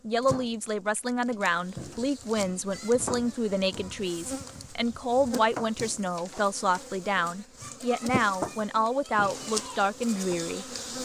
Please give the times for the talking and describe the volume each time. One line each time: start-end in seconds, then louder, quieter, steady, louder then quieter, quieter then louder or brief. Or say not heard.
0.1-11.0 steady.